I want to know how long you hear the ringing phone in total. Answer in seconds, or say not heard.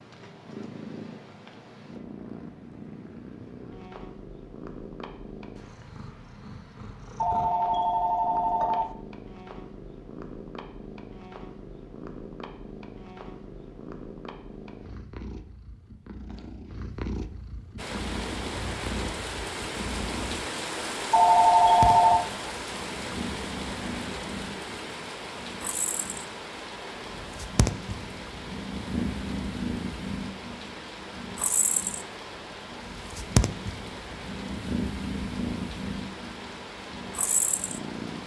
3 s.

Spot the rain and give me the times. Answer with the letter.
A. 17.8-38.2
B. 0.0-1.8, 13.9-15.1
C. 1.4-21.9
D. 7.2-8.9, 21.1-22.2
A.